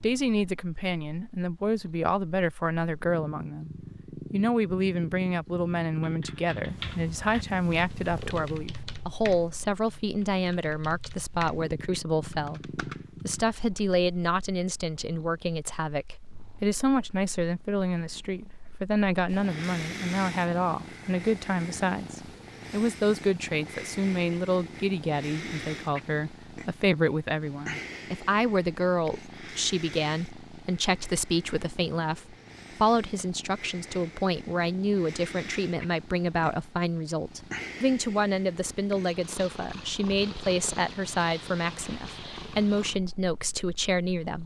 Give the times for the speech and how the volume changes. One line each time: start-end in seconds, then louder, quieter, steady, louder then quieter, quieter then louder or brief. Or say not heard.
0.0-44.4 steady.